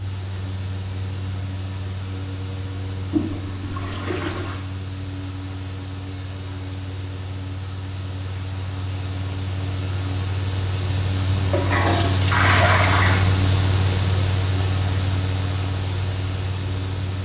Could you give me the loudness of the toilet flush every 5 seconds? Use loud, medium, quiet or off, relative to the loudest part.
medium, off, loud, off.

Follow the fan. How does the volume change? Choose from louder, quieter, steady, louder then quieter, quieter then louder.
louder.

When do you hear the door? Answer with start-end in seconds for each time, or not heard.
not heard.